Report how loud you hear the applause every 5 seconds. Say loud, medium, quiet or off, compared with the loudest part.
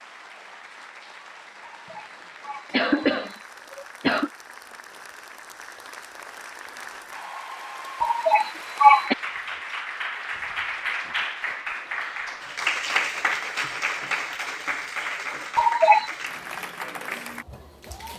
quiet, medium, loud, medium.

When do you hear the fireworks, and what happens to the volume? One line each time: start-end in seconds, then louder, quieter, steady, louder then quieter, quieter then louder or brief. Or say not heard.
not heard.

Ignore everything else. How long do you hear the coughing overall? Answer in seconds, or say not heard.
4 s.